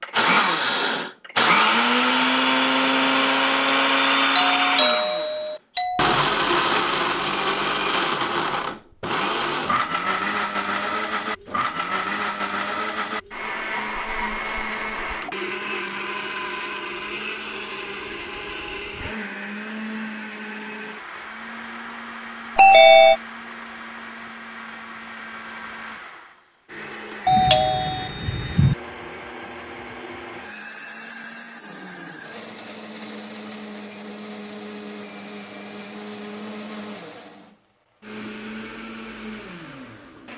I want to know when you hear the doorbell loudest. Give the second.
23 s.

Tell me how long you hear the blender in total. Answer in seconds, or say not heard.
40 s.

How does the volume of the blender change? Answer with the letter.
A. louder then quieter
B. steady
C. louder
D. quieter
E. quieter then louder
D.